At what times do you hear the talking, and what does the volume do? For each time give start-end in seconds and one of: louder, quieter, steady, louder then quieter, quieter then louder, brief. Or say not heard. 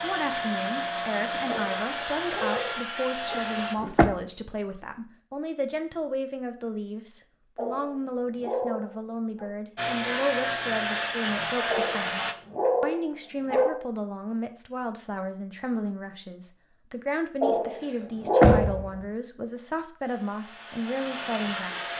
0.0-21.9 steady.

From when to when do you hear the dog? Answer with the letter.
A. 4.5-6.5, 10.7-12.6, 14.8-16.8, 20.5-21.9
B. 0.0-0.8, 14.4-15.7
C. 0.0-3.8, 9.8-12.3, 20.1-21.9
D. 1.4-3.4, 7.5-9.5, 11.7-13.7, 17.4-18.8
D.